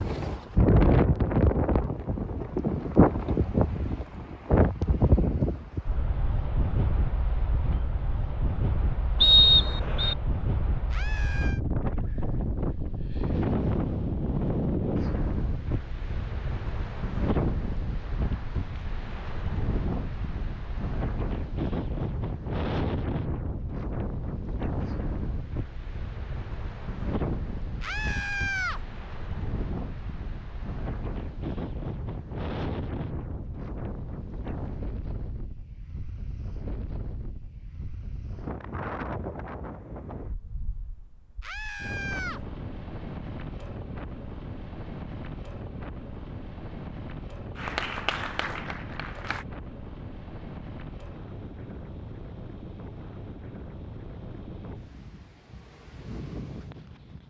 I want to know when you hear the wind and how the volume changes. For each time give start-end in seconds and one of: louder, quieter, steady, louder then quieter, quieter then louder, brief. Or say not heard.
0.0-57.2 quieter.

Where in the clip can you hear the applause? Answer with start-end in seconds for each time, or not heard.
47.5-49.5.